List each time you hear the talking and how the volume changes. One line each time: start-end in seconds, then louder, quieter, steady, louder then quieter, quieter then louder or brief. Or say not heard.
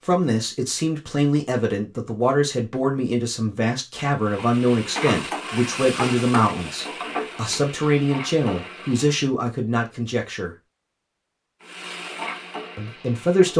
0.1-10.6 steady
12.8-13.5 brief.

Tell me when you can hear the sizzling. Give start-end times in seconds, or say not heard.
4.2-9.2, 11.6-13.5.